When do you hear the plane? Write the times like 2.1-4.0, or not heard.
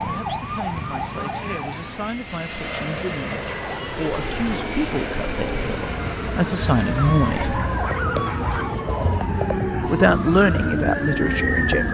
0.2-11.8.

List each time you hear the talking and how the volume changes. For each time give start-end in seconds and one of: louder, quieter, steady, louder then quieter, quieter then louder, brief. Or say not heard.
0.1-7.6 louder
9.8-11.8 brief.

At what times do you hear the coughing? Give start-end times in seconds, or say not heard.
not heard.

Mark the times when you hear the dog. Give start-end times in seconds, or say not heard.
7.0-8.8.